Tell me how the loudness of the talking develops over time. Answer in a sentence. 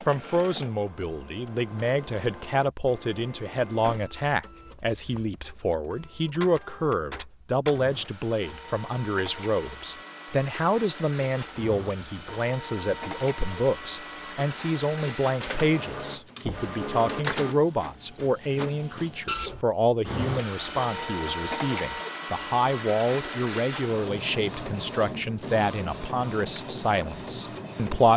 The loudness of the talking stays about the same.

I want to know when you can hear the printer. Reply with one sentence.
You can hear the printer from 0.0 to 28.1 s.